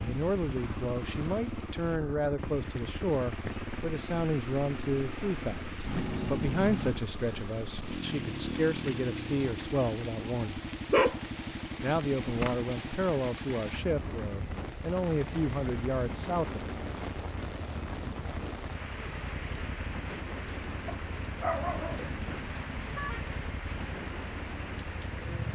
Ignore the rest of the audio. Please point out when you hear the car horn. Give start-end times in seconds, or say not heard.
5.8-7.0, 21.9-23.2.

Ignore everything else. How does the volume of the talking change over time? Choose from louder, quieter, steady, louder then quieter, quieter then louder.
steady.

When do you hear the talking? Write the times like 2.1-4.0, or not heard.
0.0-10.6, 11.8-16.7.